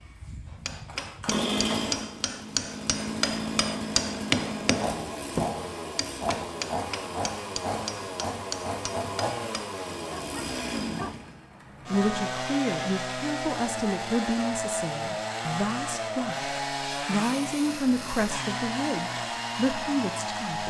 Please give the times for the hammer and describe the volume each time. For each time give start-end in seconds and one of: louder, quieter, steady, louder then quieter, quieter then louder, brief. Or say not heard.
0.5-9.7 louder then quieter.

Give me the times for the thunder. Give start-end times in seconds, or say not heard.
not heard.